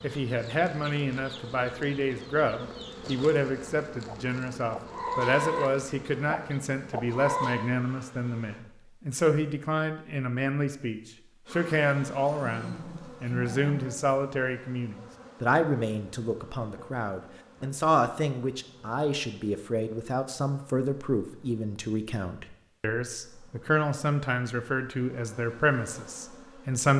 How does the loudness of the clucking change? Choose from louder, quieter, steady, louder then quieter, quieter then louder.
louder.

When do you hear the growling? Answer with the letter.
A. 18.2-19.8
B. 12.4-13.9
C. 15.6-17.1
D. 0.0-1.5
B.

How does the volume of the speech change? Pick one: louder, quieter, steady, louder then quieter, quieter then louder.
steady.